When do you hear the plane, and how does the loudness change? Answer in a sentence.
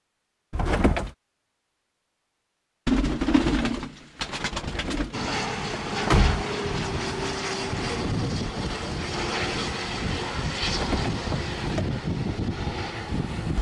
You can hear the plane from 5.1 to 13.5 s, at a steady volume.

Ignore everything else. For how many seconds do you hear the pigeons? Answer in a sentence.
You can hear the pigeons for 2 seconds altogether.